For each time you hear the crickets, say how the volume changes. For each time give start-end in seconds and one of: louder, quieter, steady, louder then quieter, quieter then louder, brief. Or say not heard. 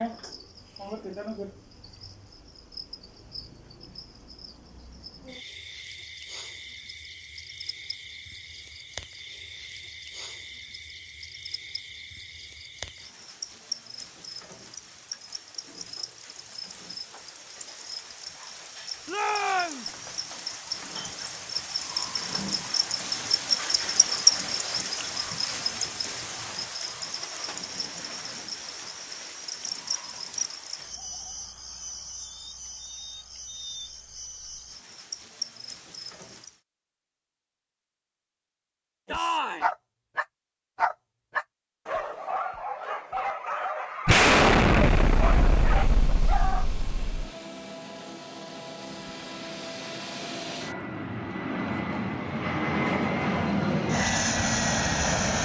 0.0-36.6 louder then quieter.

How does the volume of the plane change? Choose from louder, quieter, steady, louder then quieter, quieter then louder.
louder.